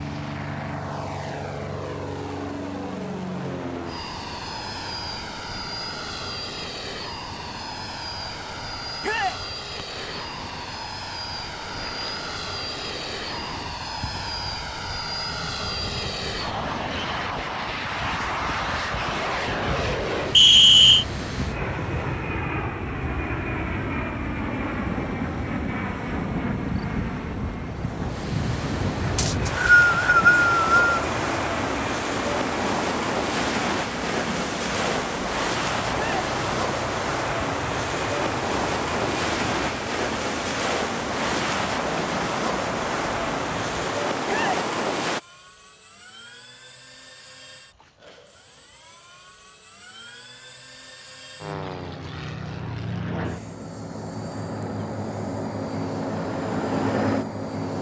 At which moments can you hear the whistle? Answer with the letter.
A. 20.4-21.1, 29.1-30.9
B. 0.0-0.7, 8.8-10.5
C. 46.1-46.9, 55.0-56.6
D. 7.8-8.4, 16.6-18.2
A.